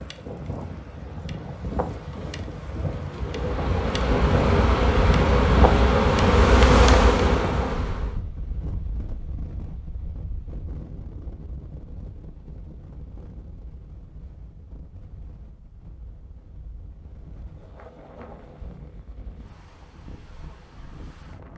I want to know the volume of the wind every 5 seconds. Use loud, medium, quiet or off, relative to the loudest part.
loud, loud, quiet, quiet, quiet.